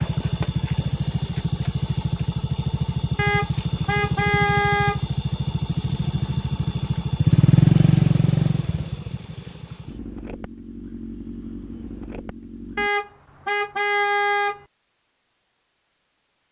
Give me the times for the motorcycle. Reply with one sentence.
You can hear the motorcycle from 0.0 to 12.9 s.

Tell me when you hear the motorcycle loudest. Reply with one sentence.
The loudest moment of the motorcycle is at 8 seconds.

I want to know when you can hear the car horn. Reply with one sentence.
The car horn can be heard from 3.1 to 5.0 s and from 12.8 to 14.7 s.